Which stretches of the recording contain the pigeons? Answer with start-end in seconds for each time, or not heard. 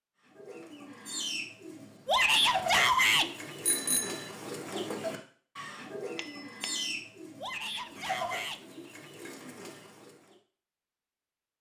0.2-10.3.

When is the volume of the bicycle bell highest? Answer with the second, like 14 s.
4 s.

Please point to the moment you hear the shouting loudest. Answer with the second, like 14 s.
3 s.